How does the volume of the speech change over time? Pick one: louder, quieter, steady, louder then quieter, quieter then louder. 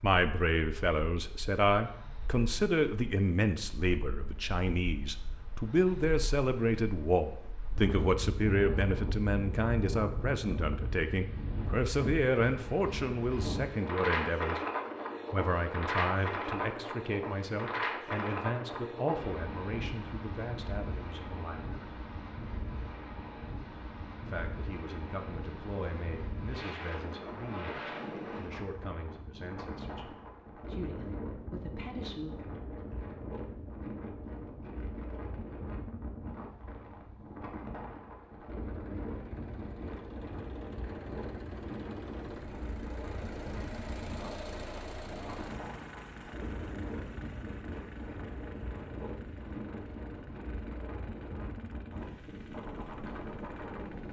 quieter.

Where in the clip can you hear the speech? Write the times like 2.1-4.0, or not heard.
0.0-14.6, 15.3-21.8, 24.2-32.5.